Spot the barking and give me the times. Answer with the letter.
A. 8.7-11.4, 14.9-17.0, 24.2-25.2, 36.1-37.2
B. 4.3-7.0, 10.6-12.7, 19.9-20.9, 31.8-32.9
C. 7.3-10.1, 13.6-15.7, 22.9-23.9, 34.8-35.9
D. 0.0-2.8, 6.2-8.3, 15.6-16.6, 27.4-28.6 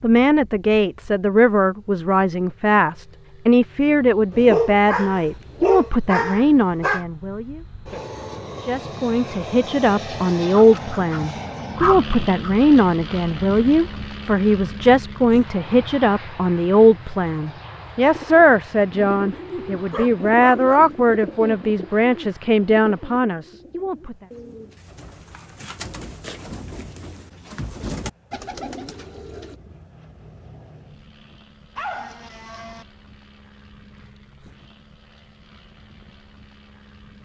B.